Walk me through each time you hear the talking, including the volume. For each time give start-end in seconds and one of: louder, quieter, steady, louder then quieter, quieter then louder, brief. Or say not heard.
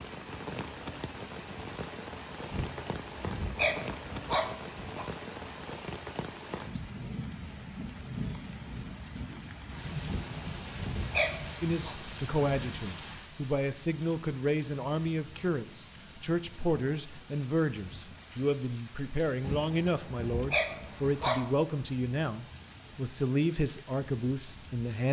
11.6-25.0 steady.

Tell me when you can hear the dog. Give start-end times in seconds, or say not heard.
2.5-5.0, 10.1-11.9, 19.4-21.5.